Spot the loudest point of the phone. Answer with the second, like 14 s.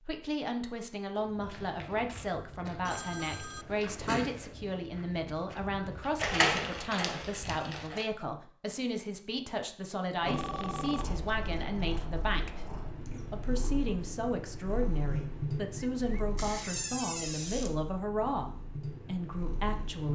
4 s.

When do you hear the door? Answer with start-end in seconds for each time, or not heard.
6.2-8.1, 16.4-17.8.